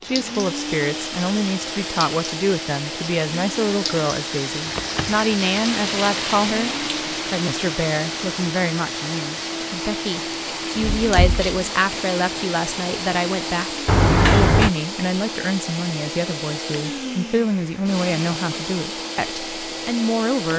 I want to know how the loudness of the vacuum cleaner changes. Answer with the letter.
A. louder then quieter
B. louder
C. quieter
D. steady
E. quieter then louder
D.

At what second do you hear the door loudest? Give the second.
14 s.